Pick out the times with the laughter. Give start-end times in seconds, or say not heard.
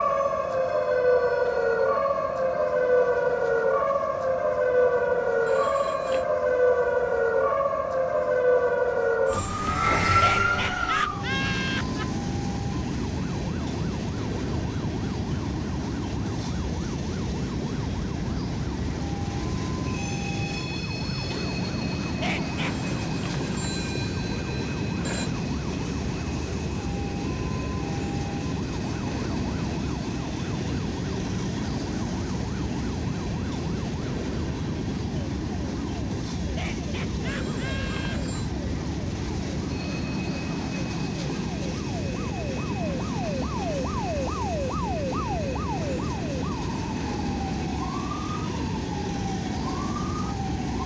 10.1-12.1, 22.1-22.8, 36.5-38.2.